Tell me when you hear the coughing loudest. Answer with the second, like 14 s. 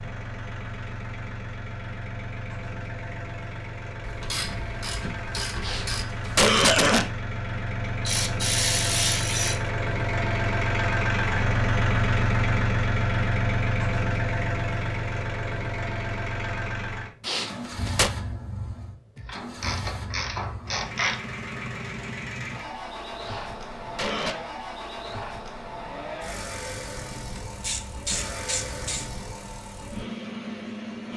7 s.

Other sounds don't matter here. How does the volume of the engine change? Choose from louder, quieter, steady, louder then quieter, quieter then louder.
louder then quieter.